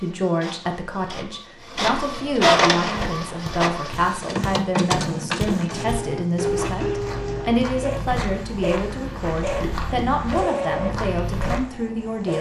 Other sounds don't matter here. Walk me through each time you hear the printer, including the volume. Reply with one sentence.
The printer can be heard from 0.0 to 12.3 s, getting quieter.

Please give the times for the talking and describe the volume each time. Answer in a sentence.
You can hear the talking from 0.0 to 12.3 s, at a steady volume.